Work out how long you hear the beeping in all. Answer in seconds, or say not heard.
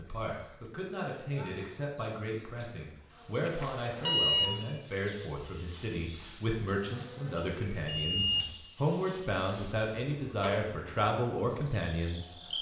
2 s.